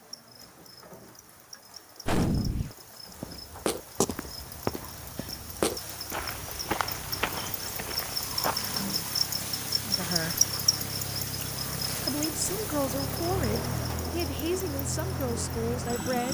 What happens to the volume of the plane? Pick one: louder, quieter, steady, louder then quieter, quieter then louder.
louder.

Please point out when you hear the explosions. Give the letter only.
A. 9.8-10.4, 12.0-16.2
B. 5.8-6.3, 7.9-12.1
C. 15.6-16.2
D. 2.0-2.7
D.